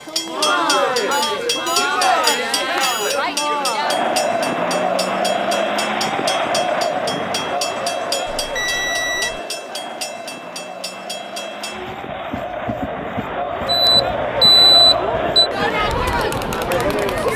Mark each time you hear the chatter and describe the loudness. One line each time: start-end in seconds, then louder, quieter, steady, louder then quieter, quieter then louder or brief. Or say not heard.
0.0-17.3 quieter then louder.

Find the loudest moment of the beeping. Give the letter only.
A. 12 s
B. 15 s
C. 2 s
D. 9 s
B.